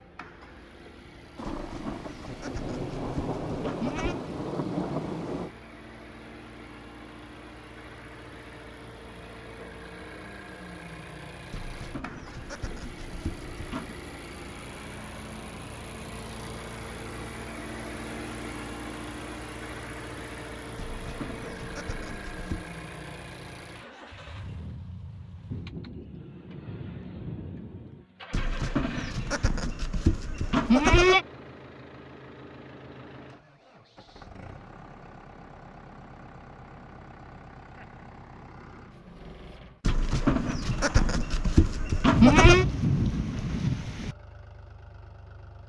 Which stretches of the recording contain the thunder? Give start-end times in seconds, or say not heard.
1.4-5.5, 25.5-28.1, 42.1-44.1.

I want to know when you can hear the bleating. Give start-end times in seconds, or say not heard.
1.5-4.2, 11.5-13.9, 20.8-22.7, 28.3-31.2, 39.9-42.6.